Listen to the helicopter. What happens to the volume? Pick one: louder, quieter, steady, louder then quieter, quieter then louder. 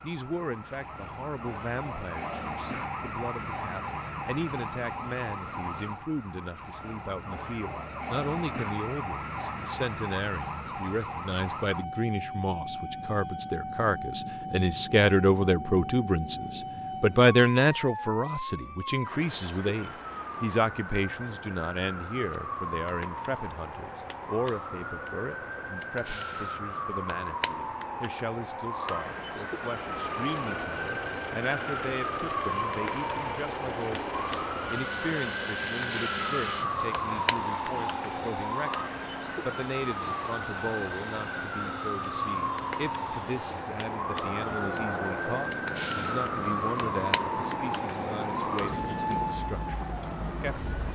steady.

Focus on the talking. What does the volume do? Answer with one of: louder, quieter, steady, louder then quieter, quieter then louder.
louder then quieter.